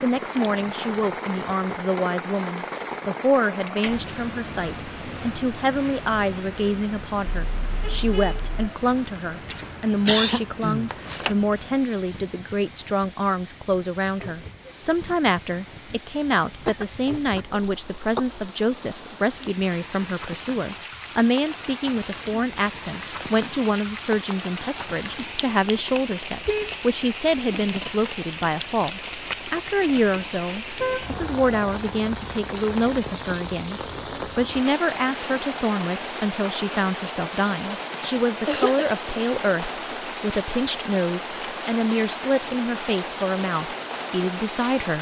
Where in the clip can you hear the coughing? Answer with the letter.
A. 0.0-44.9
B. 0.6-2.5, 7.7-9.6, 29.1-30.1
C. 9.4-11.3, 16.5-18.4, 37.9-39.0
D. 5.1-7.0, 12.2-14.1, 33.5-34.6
C.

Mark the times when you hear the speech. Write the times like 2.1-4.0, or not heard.
0.0-44.9.